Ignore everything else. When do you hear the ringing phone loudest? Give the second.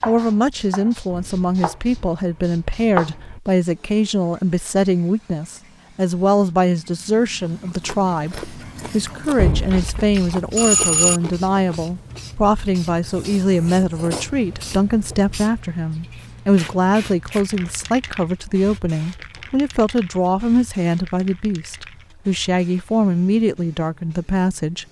11 s.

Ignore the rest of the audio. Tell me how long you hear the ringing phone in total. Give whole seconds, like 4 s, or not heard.
2 s.